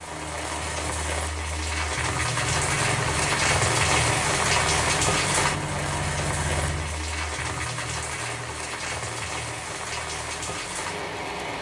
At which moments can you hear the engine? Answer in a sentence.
The engine can be heard from 2.3 to 7.0 s.